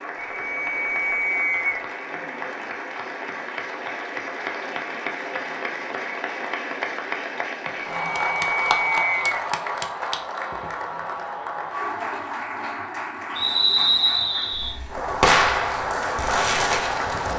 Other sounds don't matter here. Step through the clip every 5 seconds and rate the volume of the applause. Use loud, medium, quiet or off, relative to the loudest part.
medium, loud, medium, loud.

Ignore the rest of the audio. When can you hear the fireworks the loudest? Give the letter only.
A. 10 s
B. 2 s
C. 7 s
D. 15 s
D.